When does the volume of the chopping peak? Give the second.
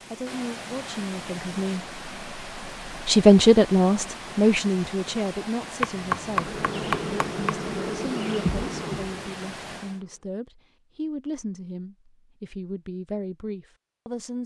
6 s.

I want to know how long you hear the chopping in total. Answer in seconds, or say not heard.
2 s.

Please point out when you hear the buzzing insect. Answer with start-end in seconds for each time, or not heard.
6.2-10.2.